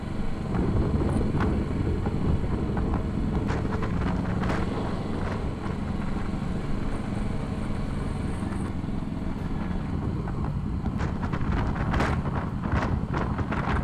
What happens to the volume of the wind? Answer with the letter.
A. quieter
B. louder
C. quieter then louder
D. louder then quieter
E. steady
C.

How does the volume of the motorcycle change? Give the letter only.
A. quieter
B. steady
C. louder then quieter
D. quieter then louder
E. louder
B.